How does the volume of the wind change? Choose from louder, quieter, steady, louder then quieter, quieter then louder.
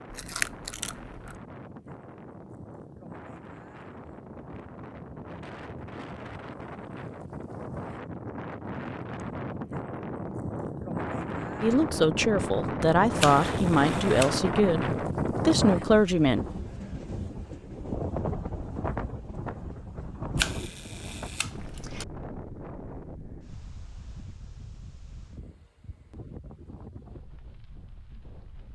louder then quieter.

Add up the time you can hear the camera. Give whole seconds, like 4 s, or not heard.
4 s.